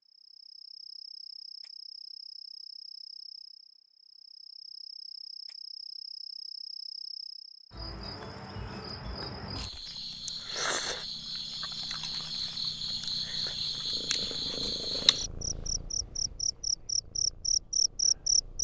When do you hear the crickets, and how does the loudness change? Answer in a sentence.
The crickets can be heard from 0.1 to 18.6 s, getting louder.